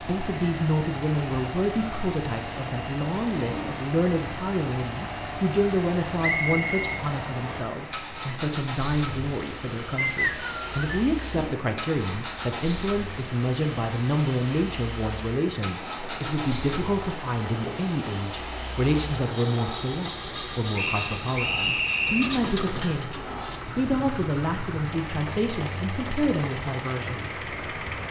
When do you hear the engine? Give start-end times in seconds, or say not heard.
0.0-28.0.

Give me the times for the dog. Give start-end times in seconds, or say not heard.
not heard.